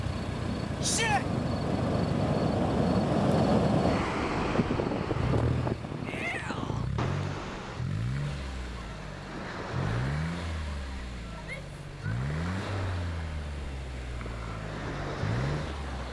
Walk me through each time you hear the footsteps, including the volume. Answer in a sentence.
The footsteps can't be heard in this clip.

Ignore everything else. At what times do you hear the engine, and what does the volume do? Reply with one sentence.
You can hear the engine from 0.0 to 16.0 s, at a steady volume.